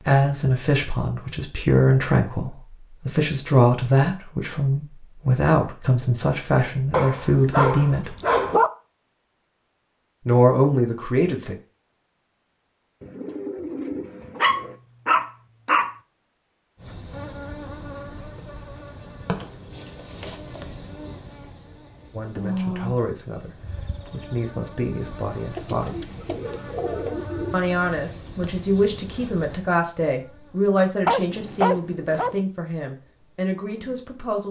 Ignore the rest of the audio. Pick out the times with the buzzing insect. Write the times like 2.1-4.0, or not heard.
16.8-34.2.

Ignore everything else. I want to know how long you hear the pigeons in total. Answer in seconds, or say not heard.
4 s.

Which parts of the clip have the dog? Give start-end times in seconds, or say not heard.
6.9-8.7, 14.3-15.9, 31.1-32.4.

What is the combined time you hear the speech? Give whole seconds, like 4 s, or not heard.
20 s.